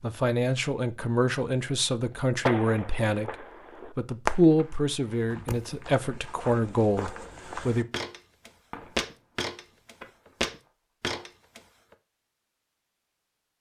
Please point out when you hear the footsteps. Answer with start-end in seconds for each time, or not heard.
5.0-11.9.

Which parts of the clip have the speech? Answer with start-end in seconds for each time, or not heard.
0.0-7.8.